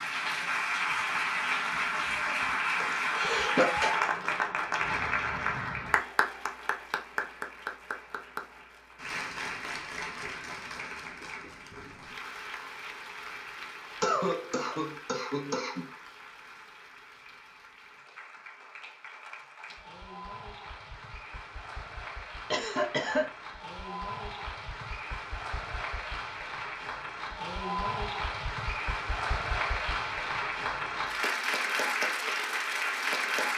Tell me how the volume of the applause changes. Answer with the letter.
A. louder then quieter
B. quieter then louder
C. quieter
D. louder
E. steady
B.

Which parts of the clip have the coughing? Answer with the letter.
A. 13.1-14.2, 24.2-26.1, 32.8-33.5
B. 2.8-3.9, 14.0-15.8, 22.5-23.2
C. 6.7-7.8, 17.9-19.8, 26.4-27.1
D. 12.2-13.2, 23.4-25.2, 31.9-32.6
B.